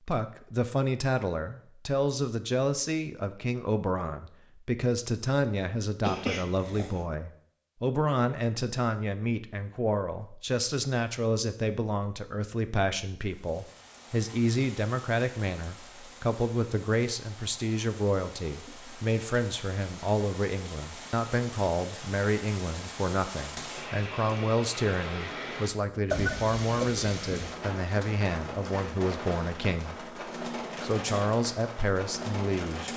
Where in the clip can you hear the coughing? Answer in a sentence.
The coughing can be heard from 6.0 to 7.0 s and from 25.9 to 27.1 s.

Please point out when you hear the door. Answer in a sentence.
The door can't be heard in this clip.